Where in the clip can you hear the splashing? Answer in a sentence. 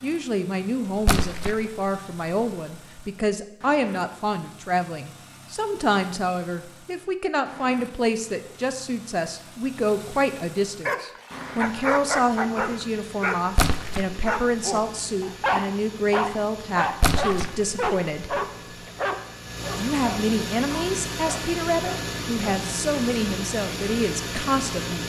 The splashing can be heard from 1.1 to 1.6 s, from 13.6 to 14.2 s and from 17.0 to 17.6 s.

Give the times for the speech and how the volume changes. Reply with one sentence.
The speech can be heard from 0.0 to 18.4 s, at a steady volume; and from 19.8 to 25.0 s, at a steady volume.